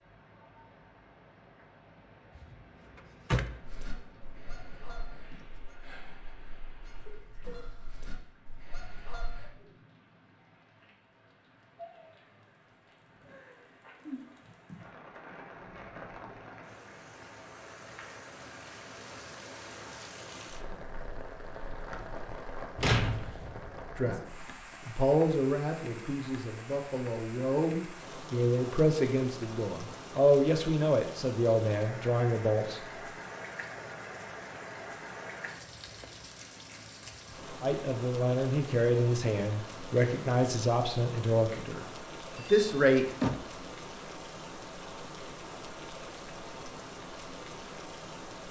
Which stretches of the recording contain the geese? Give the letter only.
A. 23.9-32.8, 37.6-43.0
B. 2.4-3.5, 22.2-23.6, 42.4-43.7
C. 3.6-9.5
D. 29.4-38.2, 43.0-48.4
C.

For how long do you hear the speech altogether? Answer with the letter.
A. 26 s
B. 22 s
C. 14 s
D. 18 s
C.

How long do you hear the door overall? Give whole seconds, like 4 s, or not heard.
4 s.